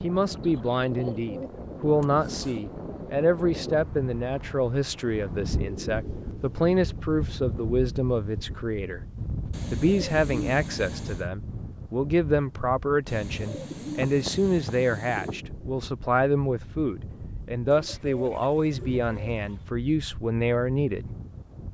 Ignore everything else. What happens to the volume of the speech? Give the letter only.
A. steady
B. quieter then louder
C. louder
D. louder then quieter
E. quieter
A.